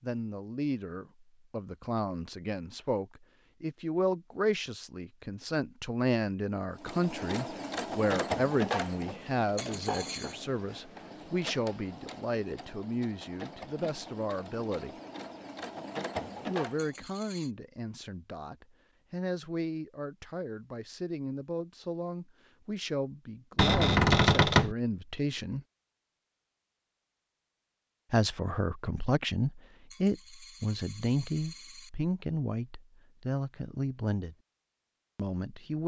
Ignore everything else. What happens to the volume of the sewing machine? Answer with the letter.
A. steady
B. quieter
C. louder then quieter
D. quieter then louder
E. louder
D.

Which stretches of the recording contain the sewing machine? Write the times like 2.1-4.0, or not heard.
6.8-16.9.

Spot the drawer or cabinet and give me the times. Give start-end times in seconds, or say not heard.
23.6-24.8.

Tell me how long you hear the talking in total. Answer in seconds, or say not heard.
31 s.